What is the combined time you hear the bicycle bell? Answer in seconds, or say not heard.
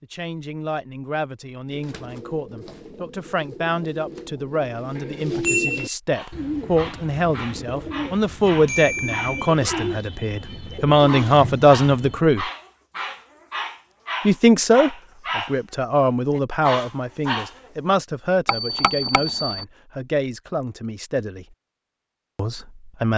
3 s.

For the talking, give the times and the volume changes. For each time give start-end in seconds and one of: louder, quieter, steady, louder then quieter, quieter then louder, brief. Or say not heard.
0.0-12.4 louder
14.2-21.6 quieter
22.4-23.1 brief.